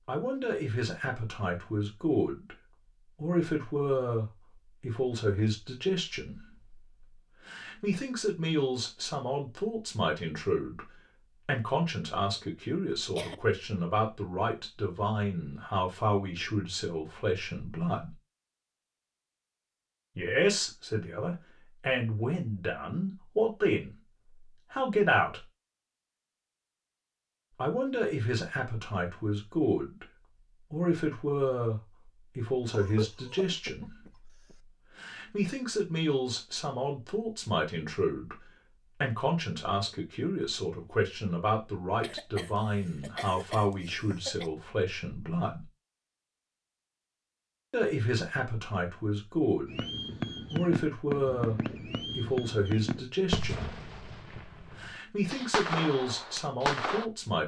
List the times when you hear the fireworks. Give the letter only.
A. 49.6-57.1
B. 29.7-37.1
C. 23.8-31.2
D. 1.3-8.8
A.